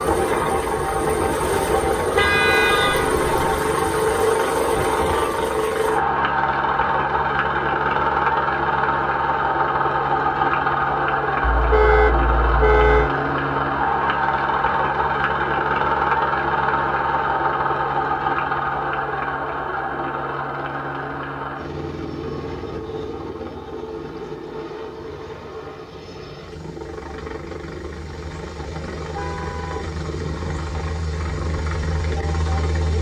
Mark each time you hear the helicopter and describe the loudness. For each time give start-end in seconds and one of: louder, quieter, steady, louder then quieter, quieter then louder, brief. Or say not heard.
0.0-32.9 quieter.